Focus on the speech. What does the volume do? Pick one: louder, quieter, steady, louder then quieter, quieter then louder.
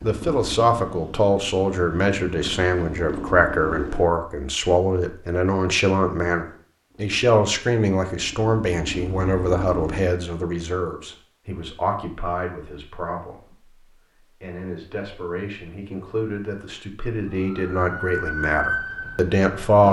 quieter then louder.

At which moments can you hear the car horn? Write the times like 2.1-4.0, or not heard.
not heard.